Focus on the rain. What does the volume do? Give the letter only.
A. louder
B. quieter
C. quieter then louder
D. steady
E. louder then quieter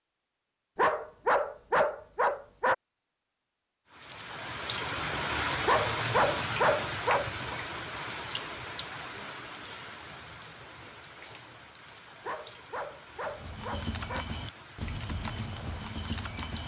B.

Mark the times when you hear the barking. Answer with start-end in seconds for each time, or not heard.
0.8-2.8, 5.7-7.6, 12.2-14.2.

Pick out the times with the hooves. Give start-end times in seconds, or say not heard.
13.2-16.6.